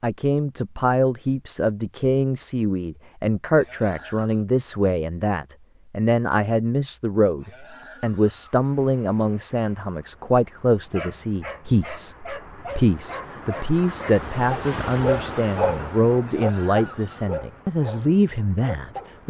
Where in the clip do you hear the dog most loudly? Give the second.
15 s.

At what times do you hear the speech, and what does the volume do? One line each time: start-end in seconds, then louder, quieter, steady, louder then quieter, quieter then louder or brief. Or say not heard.
0.0-19.2 steady.